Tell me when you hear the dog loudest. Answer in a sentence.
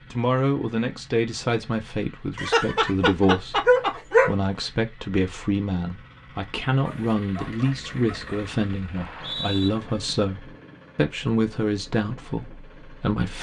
The loudest moment of the dog is at 4 seconds.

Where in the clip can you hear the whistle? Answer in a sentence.
You can hear the whistle from 8.9 to 9.7 s.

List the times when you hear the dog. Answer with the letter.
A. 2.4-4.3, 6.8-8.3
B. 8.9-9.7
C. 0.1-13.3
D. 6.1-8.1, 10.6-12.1
A.